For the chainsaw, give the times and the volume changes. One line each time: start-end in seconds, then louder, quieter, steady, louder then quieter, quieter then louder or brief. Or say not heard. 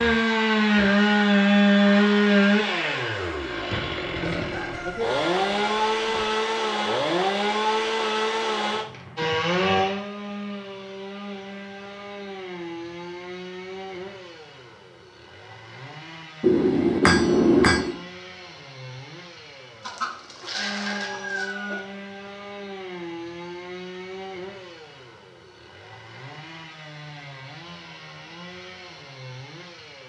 0.0-30.0 quieter.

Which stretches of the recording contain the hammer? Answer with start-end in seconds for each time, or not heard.
16.4-17.9.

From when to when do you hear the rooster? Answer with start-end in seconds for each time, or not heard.
4.2-6.2, 19.8-21.8.